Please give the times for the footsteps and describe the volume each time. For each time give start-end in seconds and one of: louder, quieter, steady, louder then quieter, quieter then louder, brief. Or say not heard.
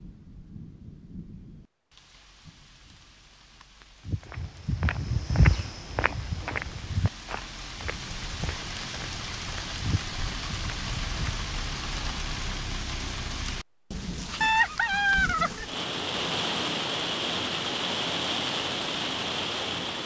4.0-11.5 quieter then louder.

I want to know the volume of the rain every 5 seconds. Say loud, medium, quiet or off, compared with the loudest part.
quiet, medium, medium, loud.